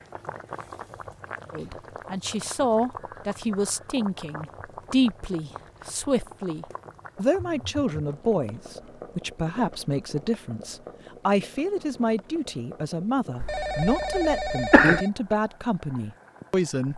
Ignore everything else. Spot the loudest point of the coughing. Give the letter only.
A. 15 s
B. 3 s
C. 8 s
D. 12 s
A.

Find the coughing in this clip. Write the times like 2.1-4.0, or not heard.
13.4-15.0.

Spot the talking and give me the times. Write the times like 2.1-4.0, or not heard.
1.5-16.9.